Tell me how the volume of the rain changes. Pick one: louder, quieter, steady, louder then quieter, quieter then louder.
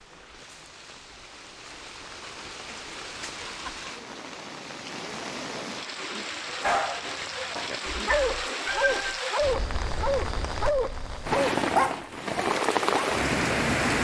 louder.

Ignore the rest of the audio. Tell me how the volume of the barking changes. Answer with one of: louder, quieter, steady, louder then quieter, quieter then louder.
louder.